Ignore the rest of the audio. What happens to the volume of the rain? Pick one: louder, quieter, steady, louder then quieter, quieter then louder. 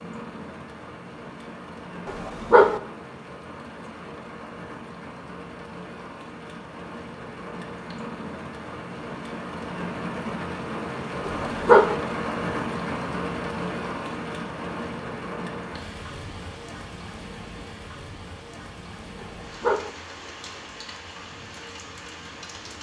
louder then quieter.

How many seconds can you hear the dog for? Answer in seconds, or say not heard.
2 s.